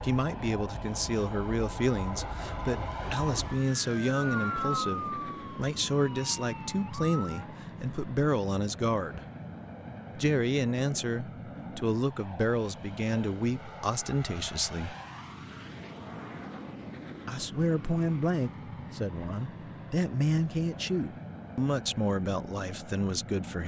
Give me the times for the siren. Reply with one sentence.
You can hear the siren from 0.0 to 7.5 s.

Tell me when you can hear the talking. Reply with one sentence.
The talking can be heard from 0.0 to 9.2 s, from 10.2 to 14.9 s and from 17.2 to 23.6 s.